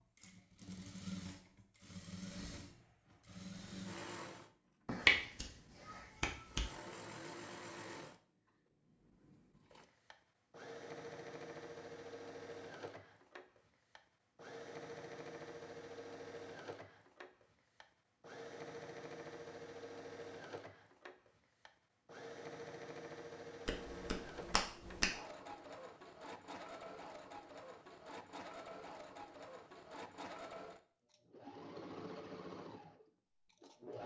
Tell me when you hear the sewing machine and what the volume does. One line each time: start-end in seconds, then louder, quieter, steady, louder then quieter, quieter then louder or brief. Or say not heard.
0.0-34.0 steady.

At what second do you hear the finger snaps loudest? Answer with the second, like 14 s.
5 s.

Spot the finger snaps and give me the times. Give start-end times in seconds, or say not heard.
4.8-5.5, 6.2-6.7, 23.6-25.1.